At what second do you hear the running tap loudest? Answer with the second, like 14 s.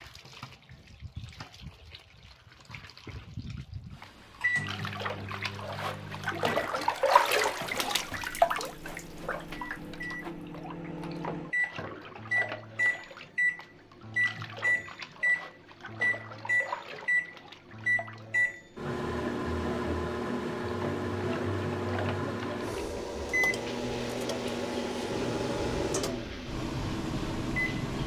7 s.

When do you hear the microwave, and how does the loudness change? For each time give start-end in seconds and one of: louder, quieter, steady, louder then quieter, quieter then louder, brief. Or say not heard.
4.0-28.0 louder.